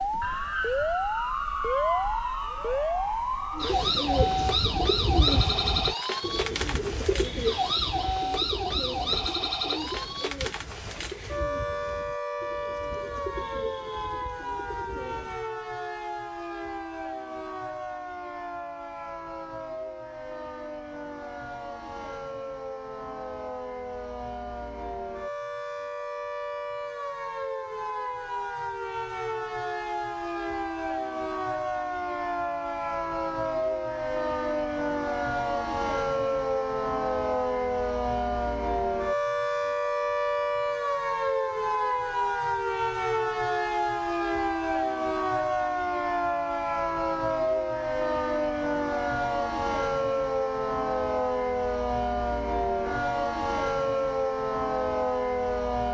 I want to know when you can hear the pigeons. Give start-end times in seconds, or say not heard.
3.5-15.4.